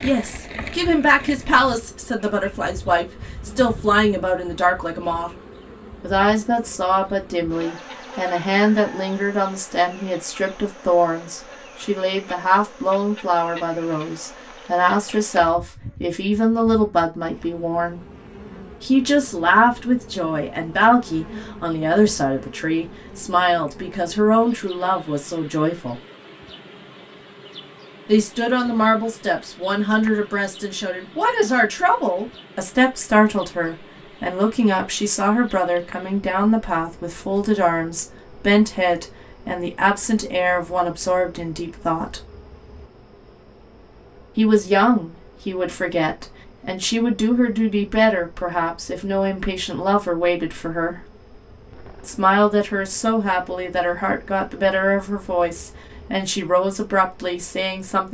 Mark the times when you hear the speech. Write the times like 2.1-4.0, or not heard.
0.0-5.3, 6.0-18.0, 18.8-26.0, 28.1-42.2, 44.4-51.0, 52.0-58.0.